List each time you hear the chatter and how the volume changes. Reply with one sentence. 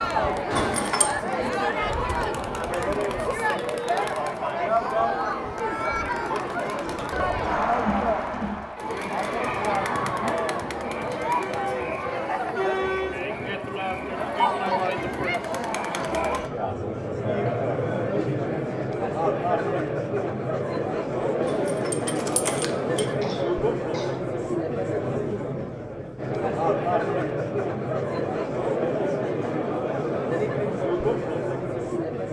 You can hear the chatter from 0.0 to 32.2 s, at a steady volume.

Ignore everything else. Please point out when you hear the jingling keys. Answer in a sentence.
You can hear the jingling keys from 0.5 to 1.1 s and from 21.4 to 23.1 s.